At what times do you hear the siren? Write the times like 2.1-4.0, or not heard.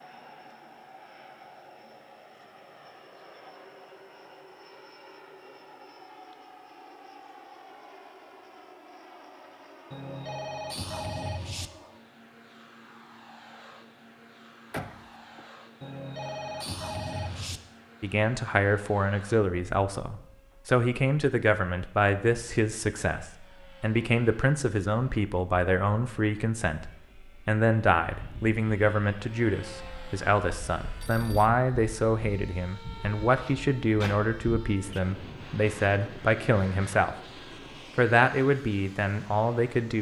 not heard.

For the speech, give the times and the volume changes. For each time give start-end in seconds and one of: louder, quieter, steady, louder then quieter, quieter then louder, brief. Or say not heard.
18.0-37.1 steady
38.0-39.9 brief.